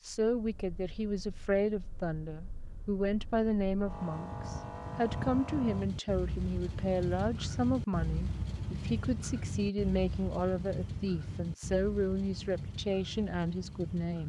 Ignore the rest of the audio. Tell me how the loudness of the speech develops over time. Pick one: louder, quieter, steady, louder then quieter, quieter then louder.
steady.